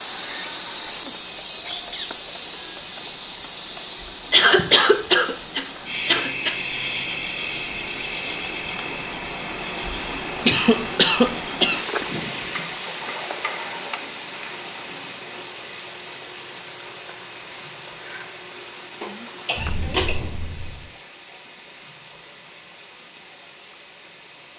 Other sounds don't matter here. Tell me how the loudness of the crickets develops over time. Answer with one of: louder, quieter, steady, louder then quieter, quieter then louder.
quieter then louder.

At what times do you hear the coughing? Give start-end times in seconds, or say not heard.
4.3-6.5, 10.4-11.8, 19.0-20.3.